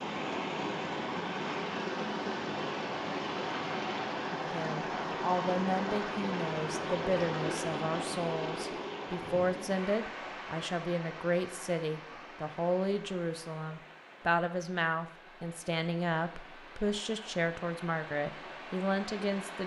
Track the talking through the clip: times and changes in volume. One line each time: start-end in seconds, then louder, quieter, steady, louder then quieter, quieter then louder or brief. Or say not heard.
4.3-19.6 steady.